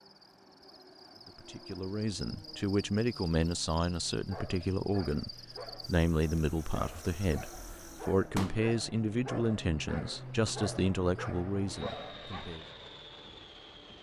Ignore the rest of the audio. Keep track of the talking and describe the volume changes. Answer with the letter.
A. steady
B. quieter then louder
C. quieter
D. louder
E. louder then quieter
A.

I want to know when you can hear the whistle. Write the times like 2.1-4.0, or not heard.
not heard.